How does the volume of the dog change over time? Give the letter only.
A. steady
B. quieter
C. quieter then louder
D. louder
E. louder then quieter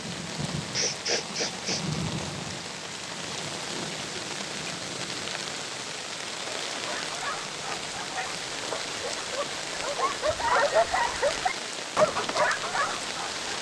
D.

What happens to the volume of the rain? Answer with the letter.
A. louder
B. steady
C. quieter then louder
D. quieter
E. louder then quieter
B.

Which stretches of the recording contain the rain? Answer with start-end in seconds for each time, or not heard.
0.0-13.5.